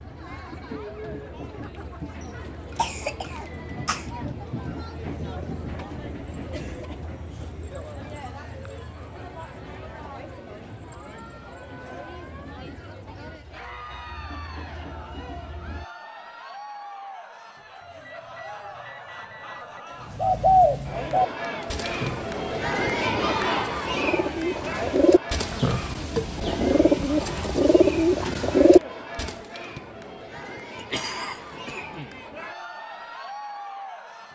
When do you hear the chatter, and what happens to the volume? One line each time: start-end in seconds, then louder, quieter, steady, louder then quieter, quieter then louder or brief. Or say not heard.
0.0-34.3 louder then quieter.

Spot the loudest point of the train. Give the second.
5 s.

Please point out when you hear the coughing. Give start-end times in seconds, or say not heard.
2.7-4.1, 30.8-32.2.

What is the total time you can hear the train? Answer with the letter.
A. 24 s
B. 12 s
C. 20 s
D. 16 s
D.